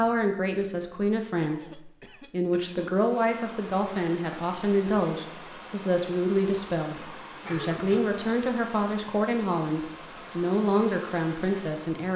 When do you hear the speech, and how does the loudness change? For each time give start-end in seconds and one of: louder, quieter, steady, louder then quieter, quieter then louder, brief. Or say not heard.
0.0-12.1 steady.